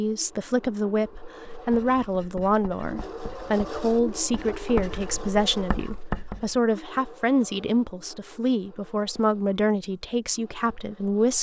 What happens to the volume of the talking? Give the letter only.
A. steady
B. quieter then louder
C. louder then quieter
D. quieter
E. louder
A.